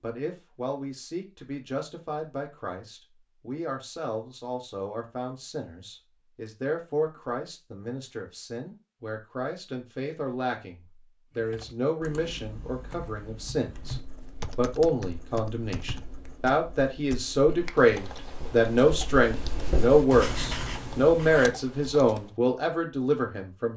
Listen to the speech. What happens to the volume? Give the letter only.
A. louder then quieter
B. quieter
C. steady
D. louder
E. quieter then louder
D.